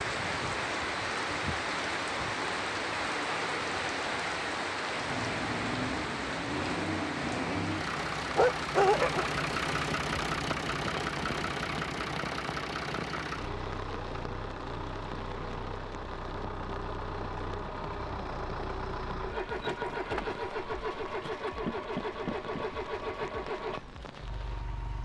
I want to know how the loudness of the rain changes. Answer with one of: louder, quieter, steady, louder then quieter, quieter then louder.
quieter.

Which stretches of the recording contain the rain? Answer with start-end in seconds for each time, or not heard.
0.0-24.9.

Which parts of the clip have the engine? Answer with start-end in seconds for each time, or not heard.
4.9-24.9.